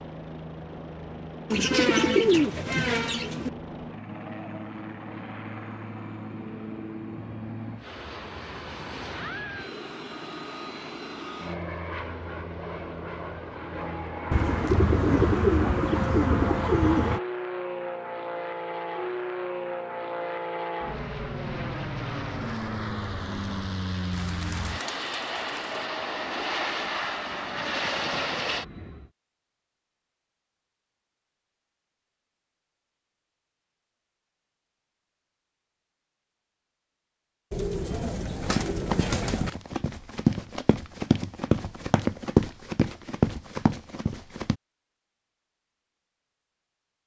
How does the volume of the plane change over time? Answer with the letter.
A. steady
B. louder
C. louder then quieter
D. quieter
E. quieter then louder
B.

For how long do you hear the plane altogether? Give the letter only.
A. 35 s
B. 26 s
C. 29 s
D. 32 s
C.